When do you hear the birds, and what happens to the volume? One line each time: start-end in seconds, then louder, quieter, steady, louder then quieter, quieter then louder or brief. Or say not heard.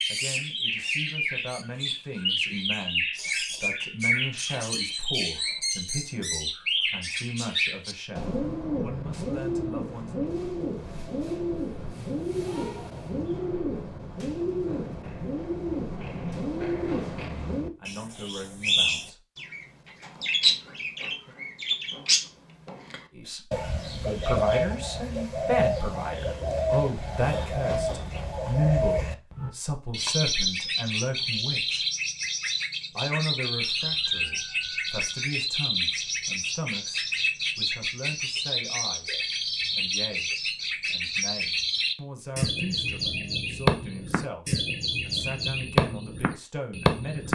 0.0-47.3 steady.